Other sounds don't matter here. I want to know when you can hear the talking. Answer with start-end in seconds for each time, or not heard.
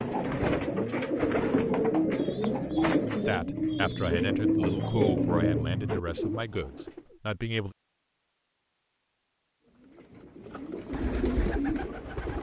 3.2-7.8.